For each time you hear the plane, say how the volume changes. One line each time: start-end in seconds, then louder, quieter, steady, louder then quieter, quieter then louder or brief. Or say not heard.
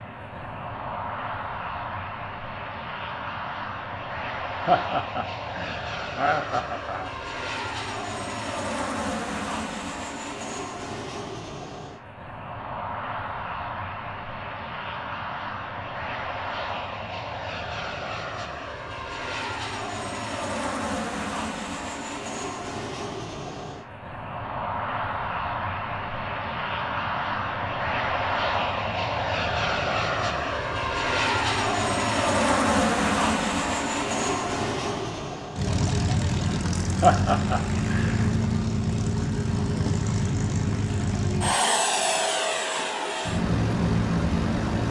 0.0-44.8 louder.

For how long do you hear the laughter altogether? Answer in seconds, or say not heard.
4 s.